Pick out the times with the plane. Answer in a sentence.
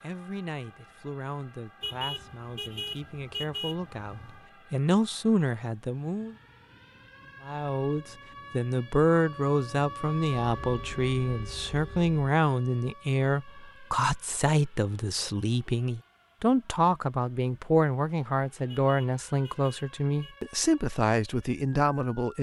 The plane can't be heard in this clip.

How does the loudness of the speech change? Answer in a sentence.
The loudness of the speech goes up.